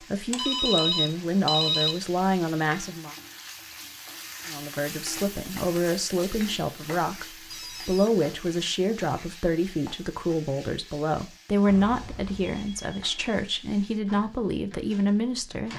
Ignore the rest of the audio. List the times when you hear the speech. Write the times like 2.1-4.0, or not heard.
0.1-3.1, 4.5-15.7.